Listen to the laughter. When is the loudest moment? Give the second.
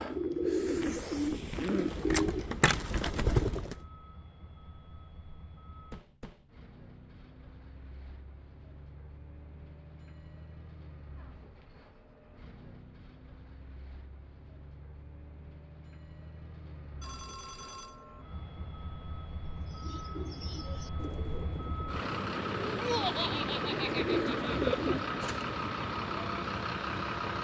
23 s.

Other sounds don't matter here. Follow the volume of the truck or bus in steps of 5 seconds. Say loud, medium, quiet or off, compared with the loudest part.
quiet, quiet, quiet, quiet, loud, loud.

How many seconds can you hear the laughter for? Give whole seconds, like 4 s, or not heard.
2 s.